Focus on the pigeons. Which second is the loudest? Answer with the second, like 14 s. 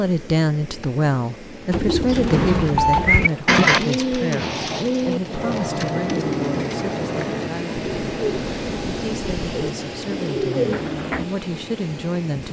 4 s.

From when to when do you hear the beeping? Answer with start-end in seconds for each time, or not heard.
2.8-3.5.